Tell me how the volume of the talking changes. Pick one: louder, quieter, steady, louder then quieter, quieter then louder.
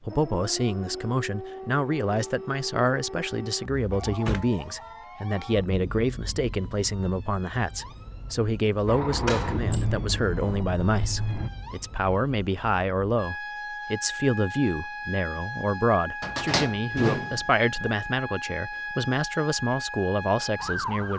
steady.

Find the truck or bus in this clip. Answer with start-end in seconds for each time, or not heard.
8.8-11.5.